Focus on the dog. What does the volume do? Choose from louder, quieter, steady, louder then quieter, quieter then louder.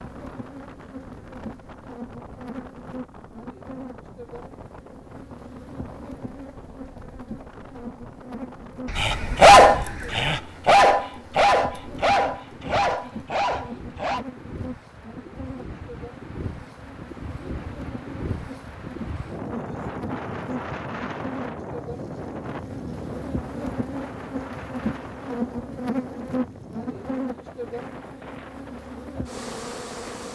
quieter.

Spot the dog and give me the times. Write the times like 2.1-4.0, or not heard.
8.9-14.2.